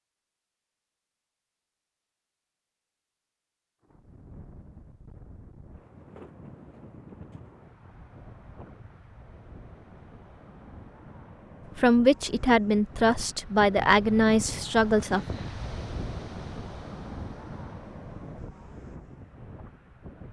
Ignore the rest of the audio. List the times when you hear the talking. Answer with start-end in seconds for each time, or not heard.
11.8-15.3.